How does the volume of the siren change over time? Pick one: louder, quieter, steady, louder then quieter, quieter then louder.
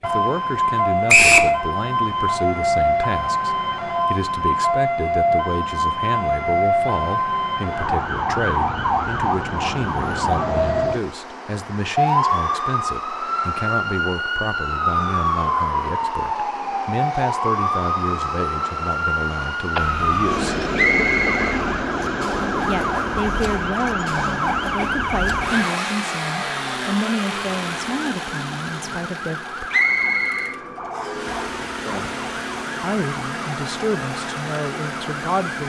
quieter.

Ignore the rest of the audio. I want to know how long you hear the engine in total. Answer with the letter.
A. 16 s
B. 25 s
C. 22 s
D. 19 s
A.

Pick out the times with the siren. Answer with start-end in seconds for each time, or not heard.
0.0-35.6.